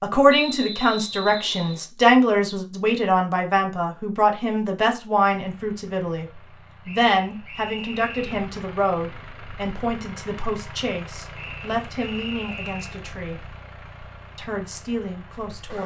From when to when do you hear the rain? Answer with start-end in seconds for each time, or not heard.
not heard.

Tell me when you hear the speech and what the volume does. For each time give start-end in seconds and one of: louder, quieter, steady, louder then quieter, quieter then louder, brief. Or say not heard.
0.0-13.4 quieter
14.3-15.8 brief.